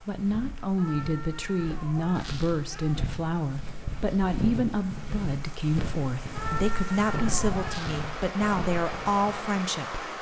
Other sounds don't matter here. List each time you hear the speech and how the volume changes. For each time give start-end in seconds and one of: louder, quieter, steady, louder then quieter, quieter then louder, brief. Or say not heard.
0.0-10.1 steady.